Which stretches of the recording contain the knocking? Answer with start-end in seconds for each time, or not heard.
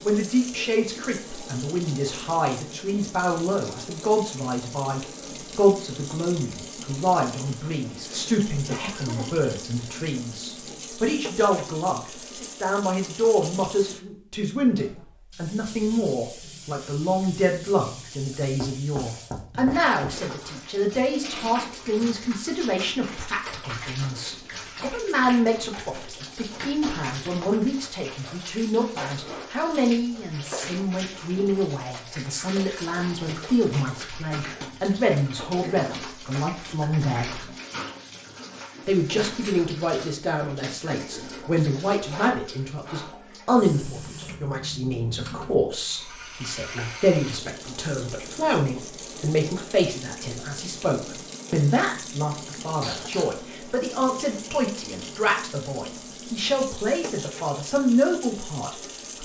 18.6-20.2.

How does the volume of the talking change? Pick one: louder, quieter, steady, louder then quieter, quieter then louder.
steady.